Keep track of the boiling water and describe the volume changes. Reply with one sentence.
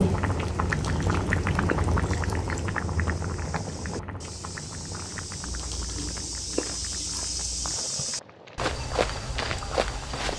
The volume of the boiling water goes down.